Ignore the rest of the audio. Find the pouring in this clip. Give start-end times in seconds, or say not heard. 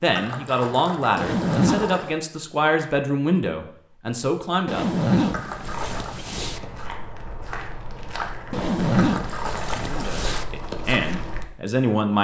0.1-2.1, 5.3-6.2, 8.9-10.4.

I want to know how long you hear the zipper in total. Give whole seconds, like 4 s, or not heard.
5 s.